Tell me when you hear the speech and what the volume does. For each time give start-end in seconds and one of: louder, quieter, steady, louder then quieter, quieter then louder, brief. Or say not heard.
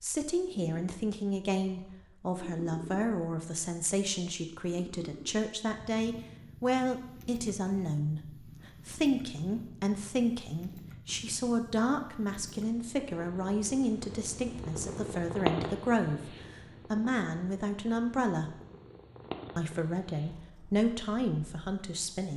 0.0-18.6 steady
19.6-22.3 brief.